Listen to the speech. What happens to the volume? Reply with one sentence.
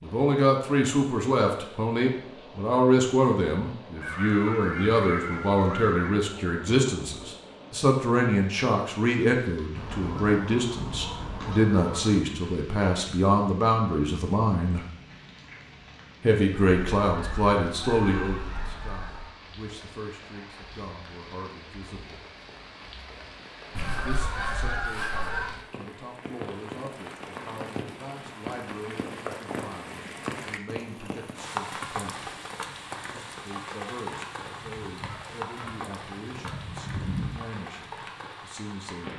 The volume of the speech goes down.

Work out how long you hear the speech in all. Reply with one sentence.
The speech can be heard for 35 seconds in total.